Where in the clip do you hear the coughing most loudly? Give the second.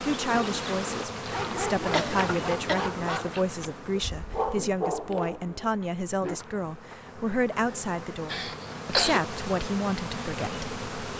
9 s.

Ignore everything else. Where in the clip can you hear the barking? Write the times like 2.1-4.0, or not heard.
0.1-6.4.